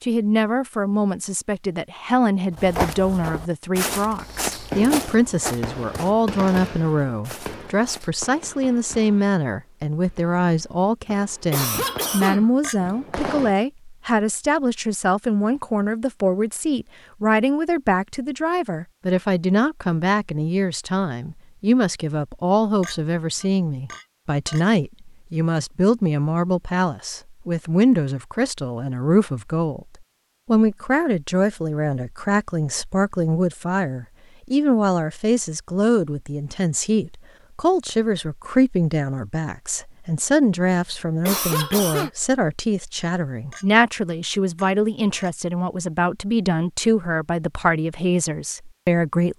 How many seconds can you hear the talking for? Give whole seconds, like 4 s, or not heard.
49 s.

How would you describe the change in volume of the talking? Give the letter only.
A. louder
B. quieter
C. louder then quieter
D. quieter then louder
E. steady
E.